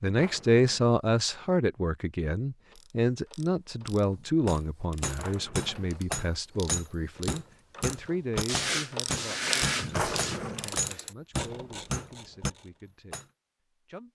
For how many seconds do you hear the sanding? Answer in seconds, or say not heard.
2 s.